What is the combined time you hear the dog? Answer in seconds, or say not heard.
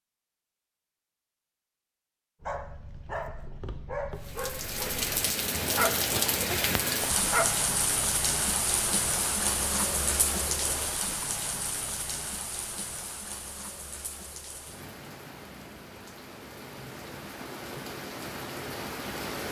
5 s.